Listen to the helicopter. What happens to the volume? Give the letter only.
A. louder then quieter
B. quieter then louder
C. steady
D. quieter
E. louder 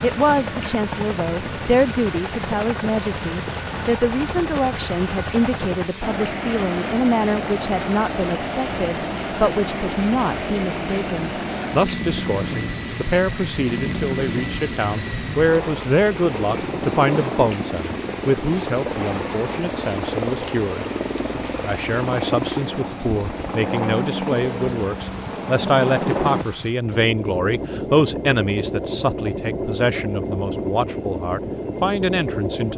C.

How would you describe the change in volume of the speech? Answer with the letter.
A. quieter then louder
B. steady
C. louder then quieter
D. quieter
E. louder
B.